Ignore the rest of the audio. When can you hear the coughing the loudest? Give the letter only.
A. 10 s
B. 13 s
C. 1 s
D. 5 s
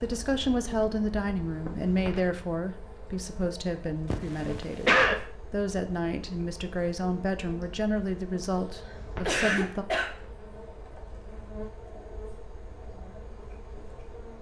D.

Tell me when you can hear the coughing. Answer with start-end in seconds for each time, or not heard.
4.1-5.2, 8.8-10.1.